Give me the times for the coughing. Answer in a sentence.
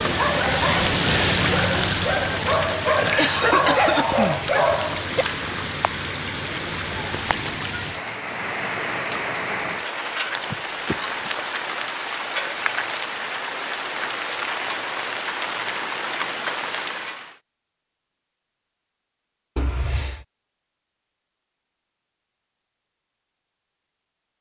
The coughing can be heard from 3.0 to 4.4 s, from 10.2 to 11.4 s and from 19.6 to 20.2 s.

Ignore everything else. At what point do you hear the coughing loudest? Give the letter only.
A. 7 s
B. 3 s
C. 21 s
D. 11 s
B.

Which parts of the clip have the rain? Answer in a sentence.
The rain can be heard from 0.0 to 17.4 s.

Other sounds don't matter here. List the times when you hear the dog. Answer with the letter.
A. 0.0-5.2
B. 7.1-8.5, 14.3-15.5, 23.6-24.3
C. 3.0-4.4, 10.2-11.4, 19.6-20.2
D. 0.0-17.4
A.